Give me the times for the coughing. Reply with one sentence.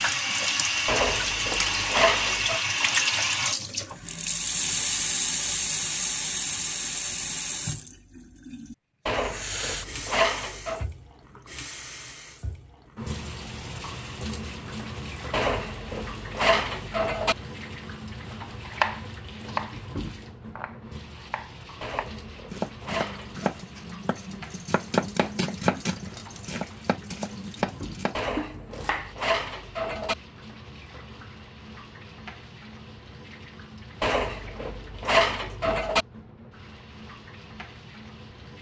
You can't hear the coughing here.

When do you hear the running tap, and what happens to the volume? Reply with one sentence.
The running tap can be heard from 0.0 to 38.5 s, getting quieter.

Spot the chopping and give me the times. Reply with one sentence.
The chopping can be heard from 18.6 to 29.1 s.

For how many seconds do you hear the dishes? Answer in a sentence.
You can hear the dishes for 11 seconds altogether.